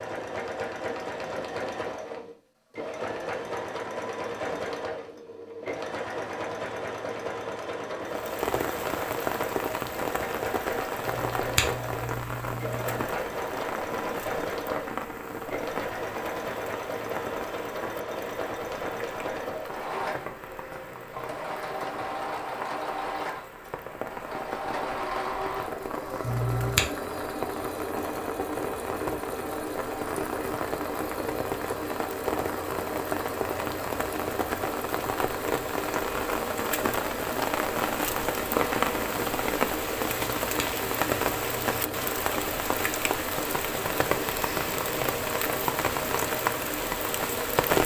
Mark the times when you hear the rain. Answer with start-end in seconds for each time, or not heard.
8.1-47.8.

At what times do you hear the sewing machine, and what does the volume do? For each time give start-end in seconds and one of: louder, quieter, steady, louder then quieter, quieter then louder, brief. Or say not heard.
0.0-47.8 steady.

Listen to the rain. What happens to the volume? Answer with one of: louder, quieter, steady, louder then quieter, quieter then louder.
quieter then louder.